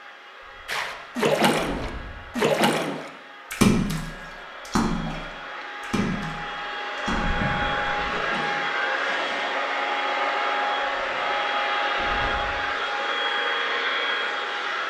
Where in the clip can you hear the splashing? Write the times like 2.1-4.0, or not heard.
0.7-9.4.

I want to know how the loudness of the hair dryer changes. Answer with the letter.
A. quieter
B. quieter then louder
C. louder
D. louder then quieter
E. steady
C.